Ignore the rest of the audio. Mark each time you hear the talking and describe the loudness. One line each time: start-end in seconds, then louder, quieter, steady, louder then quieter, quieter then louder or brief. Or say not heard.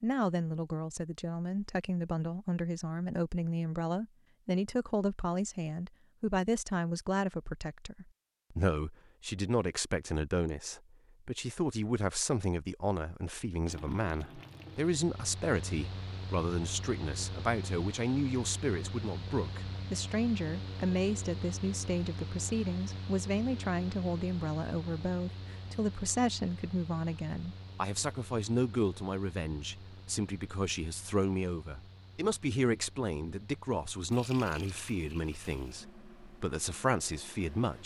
0.0-37.8 steady.